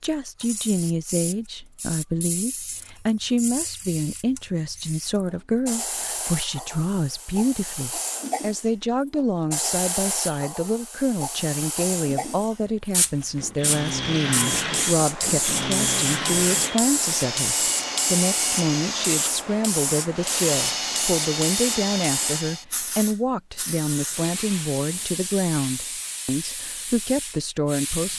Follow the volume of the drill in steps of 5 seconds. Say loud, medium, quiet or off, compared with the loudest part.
off, off, loud, loud, loud, off.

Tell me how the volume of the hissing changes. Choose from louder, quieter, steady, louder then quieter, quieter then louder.
louder then quieter.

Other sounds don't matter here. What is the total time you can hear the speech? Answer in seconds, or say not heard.
28 s.